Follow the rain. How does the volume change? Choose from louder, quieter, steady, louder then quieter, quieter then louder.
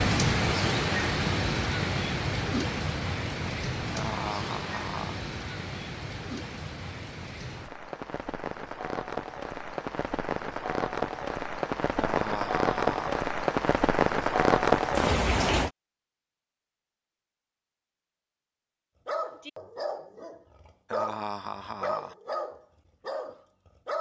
quieter then louder.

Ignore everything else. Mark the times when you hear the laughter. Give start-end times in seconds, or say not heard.
3.9-5.2, 11.9-13.2, 20.9-22.1.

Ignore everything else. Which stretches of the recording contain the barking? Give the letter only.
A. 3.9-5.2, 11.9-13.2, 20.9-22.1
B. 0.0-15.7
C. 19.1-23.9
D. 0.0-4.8
C.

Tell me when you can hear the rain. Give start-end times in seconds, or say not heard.
0.0-15.7.